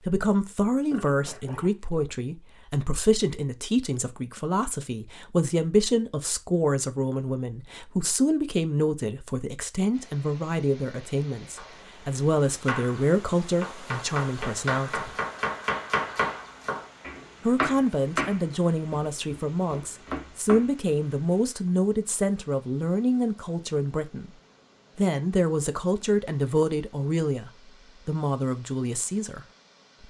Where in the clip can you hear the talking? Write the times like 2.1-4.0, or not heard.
0.1-15.2, 17.4-24.3, 24.9-29.4.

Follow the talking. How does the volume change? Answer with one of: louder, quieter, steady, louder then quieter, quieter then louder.
steady.